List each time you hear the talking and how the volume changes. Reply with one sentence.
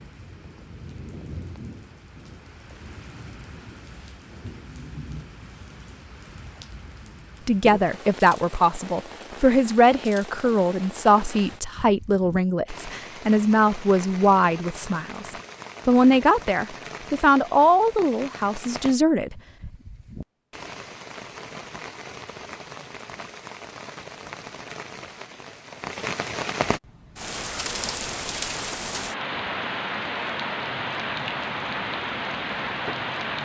The talking can be heard from 7.5 to 19.4 s, at a steady volume.